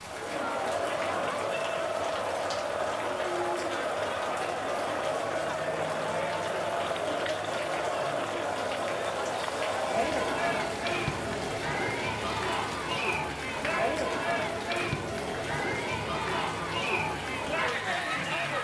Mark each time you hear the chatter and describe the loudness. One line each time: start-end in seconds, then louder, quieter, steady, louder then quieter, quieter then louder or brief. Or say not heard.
0.0-18.5 steady.